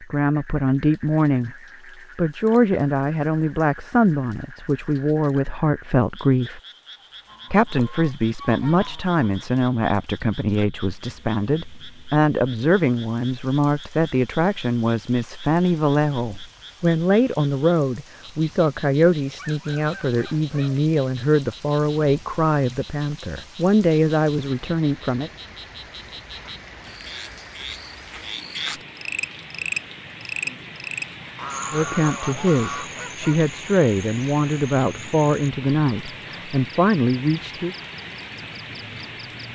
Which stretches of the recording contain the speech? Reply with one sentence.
You can hear the speech from 0.0 to 1.6 s, from 2.1 to 6.6 s, from 7.5 to 25.3 s and from 31.7 to 37.8 s.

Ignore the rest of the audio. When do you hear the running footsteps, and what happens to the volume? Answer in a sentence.
The running footsteps can't be heard in this clip.